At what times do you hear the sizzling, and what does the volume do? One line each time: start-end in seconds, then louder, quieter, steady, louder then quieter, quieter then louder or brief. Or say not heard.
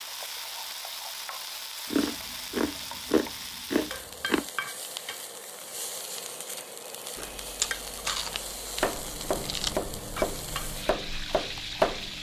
0.0-12.1 steady.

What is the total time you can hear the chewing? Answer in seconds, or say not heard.
5 s.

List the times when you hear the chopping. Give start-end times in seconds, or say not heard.
8.8-12.1.